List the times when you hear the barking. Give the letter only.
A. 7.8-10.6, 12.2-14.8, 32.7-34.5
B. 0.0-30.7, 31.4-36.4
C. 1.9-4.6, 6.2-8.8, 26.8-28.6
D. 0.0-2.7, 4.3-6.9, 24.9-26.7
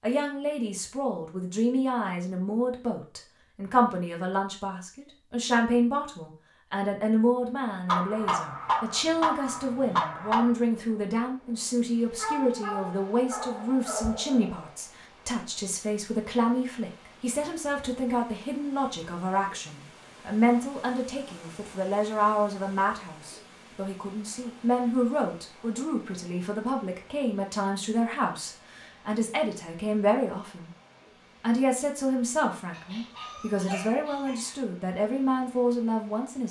A.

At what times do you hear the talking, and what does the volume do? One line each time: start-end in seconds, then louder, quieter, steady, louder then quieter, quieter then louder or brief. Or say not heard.
0.0-30.7 steady
31.4-36.4 quieter then louder.